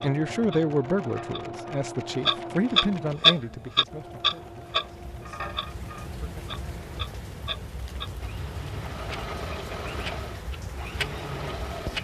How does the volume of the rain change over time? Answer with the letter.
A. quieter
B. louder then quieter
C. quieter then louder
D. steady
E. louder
E.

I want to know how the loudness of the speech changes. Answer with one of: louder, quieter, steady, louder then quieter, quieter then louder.
quieter.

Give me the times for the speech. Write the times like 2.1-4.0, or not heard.
0.0-6.5.